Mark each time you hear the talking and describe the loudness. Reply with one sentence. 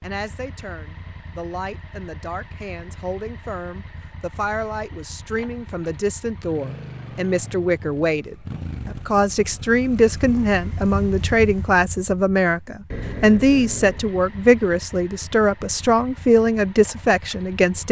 You can hear the talking from 0.0 to 17.8 s, getting louder.